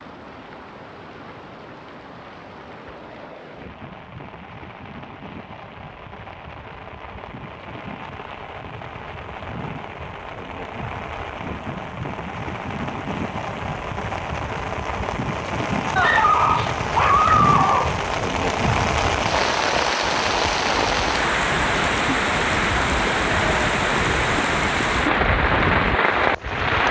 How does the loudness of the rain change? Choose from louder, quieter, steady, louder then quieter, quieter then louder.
louder.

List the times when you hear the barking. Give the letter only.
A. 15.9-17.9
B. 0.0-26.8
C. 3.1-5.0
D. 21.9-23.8
A.